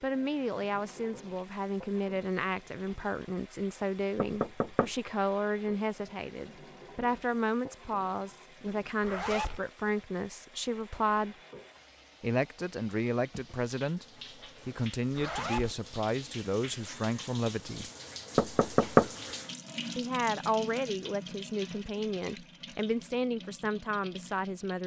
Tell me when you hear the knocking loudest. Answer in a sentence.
The volume of the knocking peaks at 19 seconds.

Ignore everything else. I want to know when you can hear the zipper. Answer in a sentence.
The zipper can be heard from 9.0 to 9.6 s and from 15.2 to 15.8 s.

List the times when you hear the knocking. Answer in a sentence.
The knocking can be heard from 4.2 to 5.0 s and from 18.4 to 19.1 s.